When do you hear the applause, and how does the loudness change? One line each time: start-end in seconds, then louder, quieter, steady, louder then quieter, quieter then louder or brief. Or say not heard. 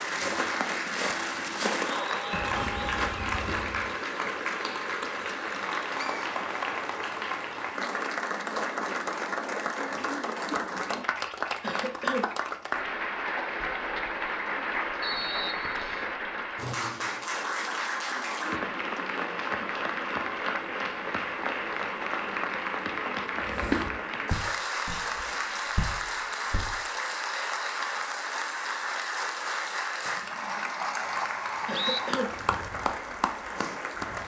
0.0-34.2 steady.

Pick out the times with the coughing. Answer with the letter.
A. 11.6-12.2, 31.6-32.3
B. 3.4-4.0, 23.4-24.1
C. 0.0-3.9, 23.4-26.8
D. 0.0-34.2
A.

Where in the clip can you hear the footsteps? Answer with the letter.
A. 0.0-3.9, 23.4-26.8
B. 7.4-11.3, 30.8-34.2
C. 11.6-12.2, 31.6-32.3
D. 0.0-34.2
A.